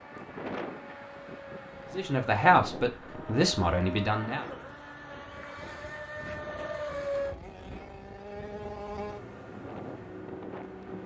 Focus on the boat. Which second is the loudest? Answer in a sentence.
The volume of the boat peaks at 7 seconds.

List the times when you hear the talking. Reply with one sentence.
You can hear the talking from 1.9 to 4.5 s.